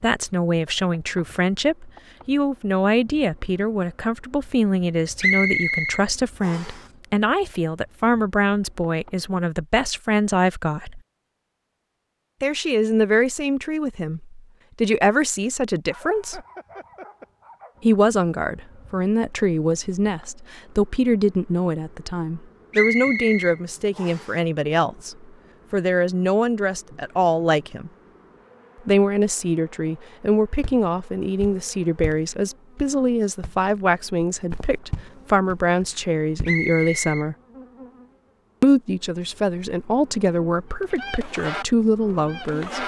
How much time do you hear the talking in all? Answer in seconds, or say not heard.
38 s.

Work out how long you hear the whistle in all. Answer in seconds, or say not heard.
4 s.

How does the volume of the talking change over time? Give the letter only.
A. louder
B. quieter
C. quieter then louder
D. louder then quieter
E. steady
E.